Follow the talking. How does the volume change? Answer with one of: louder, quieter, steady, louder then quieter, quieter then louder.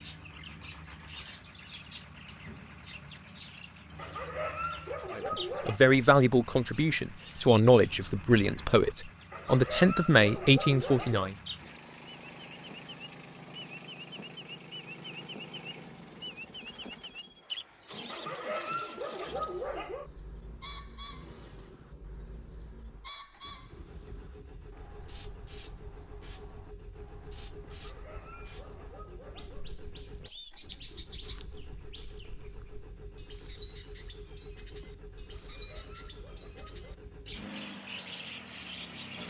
steady.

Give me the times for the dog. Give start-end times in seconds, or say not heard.
4.0-5.8, 9.3-11.3, 18.1-20.1, 27.6-29.6, 35.3-37.0.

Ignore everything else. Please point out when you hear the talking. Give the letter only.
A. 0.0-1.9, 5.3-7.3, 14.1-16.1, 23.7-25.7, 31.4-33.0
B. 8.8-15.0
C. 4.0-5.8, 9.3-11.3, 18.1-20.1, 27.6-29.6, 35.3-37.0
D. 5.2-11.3
D.